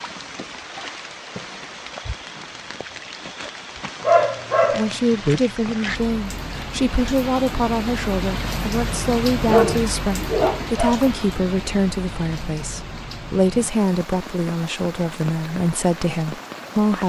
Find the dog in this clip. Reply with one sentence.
The dog can be heard from 4.0 to 6.0 s and from 9.4 to 11.1 s.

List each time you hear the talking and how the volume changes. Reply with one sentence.
The talking can be heard from 4.7 to 17.0 s, at a steady volume.